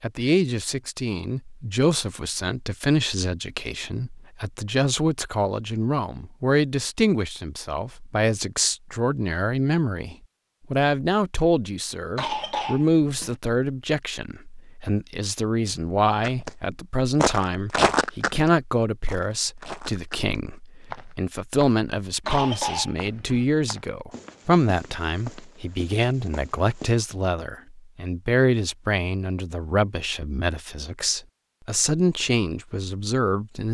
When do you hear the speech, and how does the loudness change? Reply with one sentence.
The speech can be heard from 0.0 to 33.6 s, at a steady volume.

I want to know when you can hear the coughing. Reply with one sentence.
You can hear the coughing from 12.2 to 13.3 s and from 22.2 to 23.4 s.